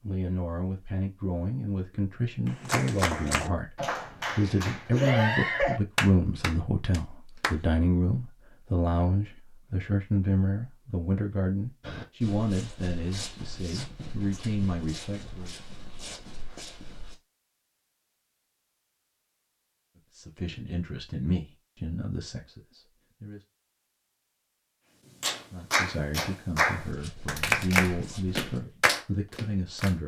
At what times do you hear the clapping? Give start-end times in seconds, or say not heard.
2.5-7.6, 25.2-30.0.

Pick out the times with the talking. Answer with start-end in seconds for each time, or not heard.
0.0-15.6, 20.1-23.4, 25.5-30.0.